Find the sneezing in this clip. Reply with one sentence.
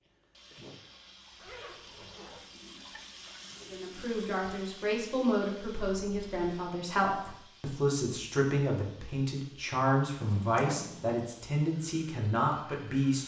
You can hear the sneezing from 0.0 to 0.8 s.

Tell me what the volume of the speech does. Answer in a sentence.
The volume of the speech stays about the same.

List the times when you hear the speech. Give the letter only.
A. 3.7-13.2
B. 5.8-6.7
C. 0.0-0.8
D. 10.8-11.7
A.